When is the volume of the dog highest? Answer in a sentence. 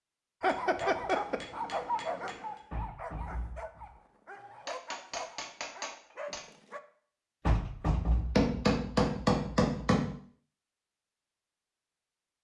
The loudest moment of the dog is at 1 second.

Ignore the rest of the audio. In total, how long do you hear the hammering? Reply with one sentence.
You can hear the hammering for 6 seconds altogether.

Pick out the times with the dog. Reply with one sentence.
The dog can be heard from 0.4 to 6.8 s.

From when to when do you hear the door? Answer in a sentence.
The door can be heard from 2.7 to 4.0 s and from 7.5 to 8.6 s.